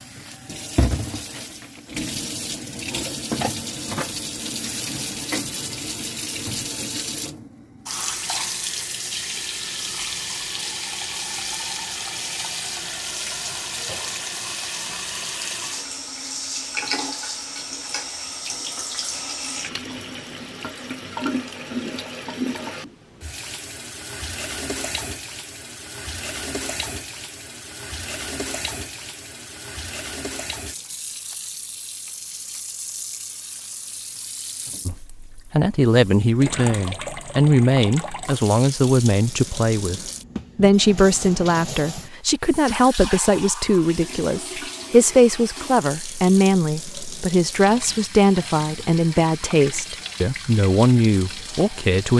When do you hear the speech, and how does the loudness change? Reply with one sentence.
The speech can be heard from 34.9 to 52.1 s, at a steady volume.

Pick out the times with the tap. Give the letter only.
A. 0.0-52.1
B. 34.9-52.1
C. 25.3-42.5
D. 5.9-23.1
A.